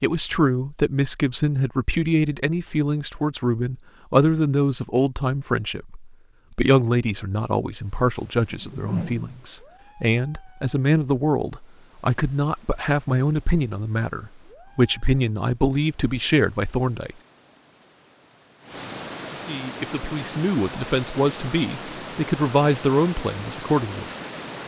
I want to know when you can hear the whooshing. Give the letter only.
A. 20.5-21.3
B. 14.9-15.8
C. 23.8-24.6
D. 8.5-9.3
D.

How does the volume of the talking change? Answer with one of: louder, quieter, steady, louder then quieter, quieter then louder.
steady.